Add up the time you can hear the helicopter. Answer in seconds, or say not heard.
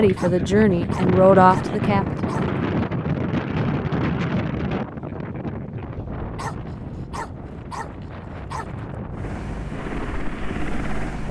2 s.